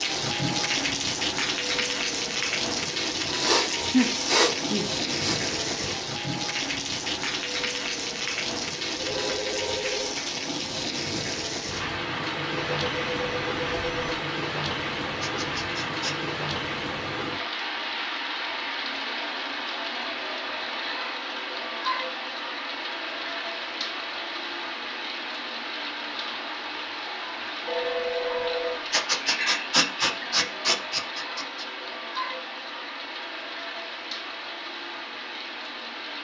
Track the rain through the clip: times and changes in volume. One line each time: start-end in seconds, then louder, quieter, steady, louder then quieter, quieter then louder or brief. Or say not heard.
0.0-36.2 quieter.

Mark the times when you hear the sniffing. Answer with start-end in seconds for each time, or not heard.
3.4-5.4, 15.2-16.2, 28.9-31.6.